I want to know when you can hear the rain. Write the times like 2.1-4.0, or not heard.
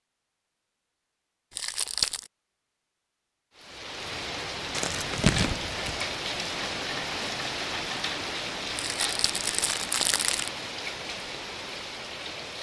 3.5-12.5.